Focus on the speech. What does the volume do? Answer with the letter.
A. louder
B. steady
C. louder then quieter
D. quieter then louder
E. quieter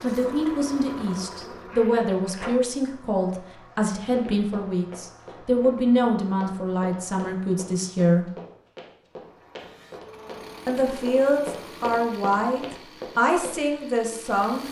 B.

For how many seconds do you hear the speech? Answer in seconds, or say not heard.
12 s.